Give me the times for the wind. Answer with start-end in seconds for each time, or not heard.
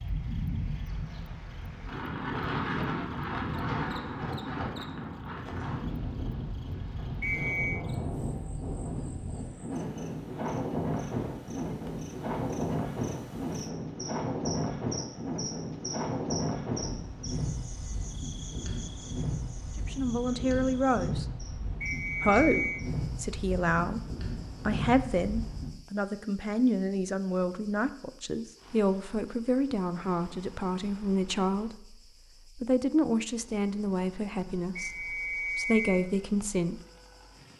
0.0-25.8.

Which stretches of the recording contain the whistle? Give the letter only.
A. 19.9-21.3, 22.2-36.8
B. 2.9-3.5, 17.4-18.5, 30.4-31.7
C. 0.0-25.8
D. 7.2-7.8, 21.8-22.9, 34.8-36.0
D.